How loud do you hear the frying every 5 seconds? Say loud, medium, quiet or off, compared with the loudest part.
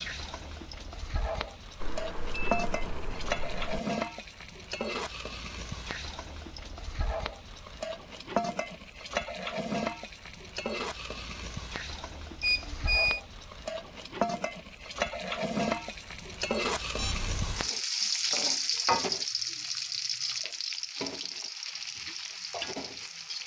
medium, medium, medium, loud, medium.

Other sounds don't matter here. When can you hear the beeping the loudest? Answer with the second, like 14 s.
13 s.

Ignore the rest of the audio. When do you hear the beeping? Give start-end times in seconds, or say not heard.
1.8-3.8, 12.4-13.2, 16.9-17.6.